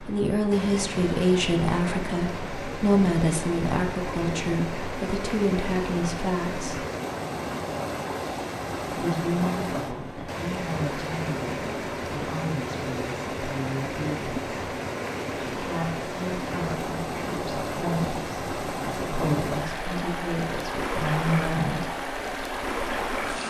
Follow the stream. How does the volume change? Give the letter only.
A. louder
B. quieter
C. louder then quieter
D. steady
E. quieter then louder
D.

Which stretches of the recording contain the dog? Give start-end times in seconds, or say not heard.
not heard.